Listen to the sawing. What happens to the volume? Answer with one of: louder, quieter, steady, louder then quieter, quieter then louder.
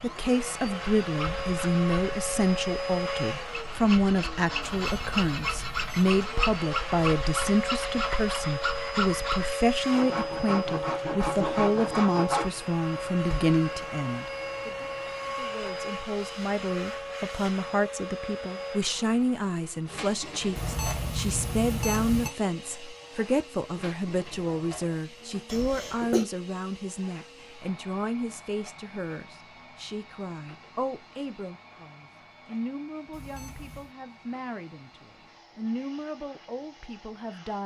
louder.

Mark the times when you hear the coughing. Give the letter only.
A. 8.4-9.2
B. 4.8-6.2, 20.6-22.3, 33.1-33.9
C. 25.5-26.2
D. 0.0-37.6
C.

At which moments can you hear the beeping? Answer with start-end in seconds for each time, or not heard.
4.8-6.2, 20.6-22.3, 33.1-33.9.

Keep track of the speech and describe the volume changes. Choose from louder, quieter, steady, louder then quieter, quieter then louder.
quieter.